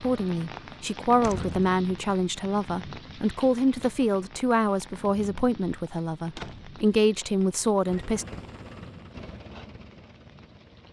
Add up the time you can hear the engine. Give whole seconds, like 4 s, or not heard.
3 s.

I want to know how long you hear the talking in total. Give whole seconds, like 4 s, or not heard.
8 s.